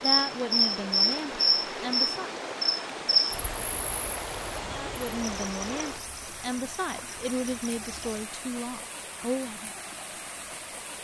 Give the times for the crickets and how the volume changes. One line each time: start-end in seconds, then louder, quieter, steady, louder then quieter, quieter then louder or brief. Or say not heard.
0.0-8.2 quieter.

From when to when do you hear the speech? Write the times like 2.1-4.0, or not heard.
0.0-2.4, 4.7-9.7.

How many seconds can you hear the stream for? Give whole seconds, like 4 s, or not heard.
11 s.